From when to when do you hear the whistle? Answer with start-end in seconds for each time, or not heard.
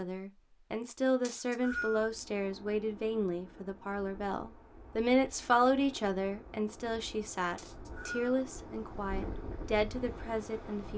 1.2-2.0, 7.5-8.3.